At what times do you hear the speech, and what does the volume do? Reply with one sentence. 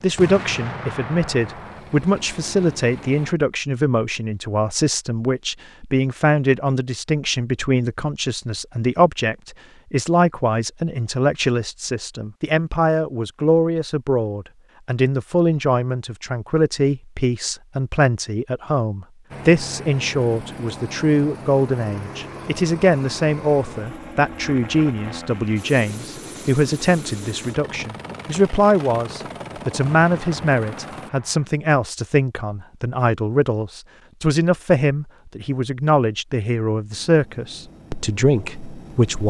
The speech can be heard from 0.0 to 39.2 s, at a steady volume.